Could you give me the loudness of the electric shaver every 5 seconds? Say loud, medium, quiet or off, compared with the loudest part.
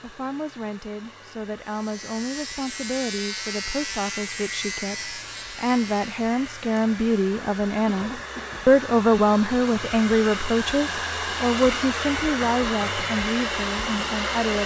loud, medium, off.